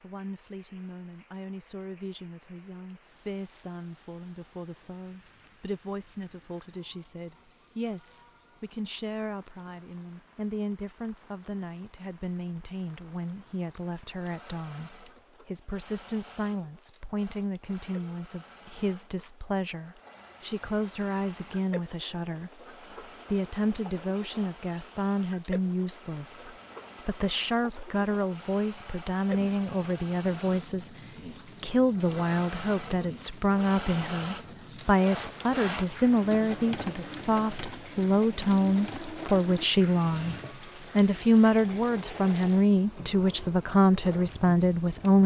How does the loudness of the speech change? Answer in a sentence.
The volume of the speech goes up.